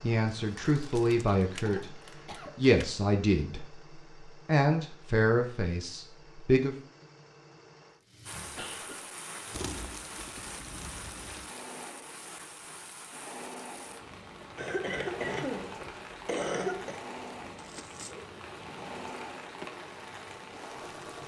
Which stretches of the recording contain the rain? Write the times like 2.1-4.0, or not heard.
8.2-21.2.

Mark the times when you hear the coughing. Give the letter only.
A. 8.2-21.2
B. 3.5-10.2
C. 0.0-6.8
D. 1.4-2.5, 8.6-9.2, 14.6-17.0
D.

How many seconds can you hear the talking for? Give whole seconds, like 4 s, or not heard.
7 s.